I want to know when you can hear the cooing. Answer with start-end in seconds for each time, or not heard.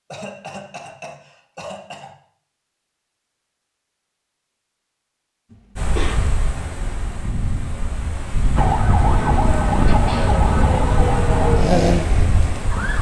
not heard.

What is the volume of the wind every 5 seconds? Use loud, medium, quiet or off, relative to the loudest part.
off, loud, loud.